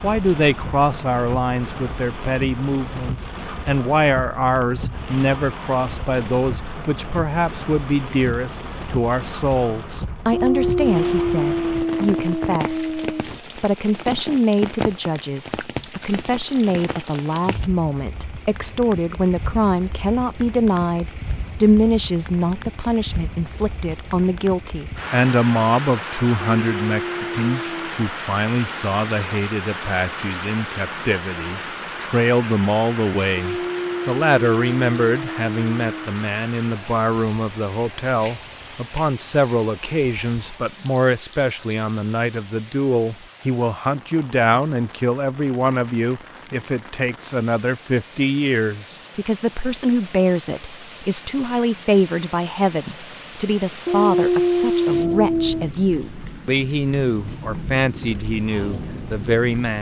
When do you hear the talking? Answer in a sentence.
You can hear the talking from 0.0 to 59.7 s.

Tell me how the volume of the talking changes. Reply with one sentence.
The volume of the talking stays about the same.